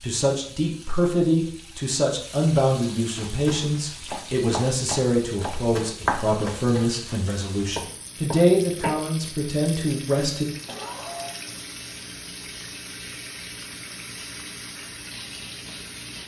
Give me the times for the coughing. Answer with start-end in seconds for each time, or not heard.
10.7-11.3.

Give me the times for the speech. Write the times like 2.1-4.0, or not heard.
0.0-10.4.